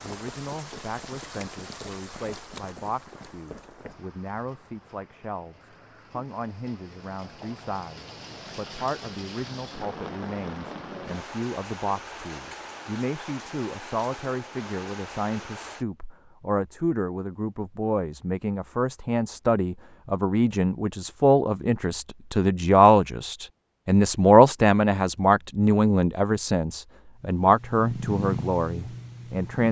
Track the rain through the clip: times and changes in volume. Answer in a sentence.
You can hear the rain from 0.0 to 15.8 s, getting quieter then louder.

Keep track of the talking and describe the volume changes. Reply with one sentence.
The volume of the talking goes up.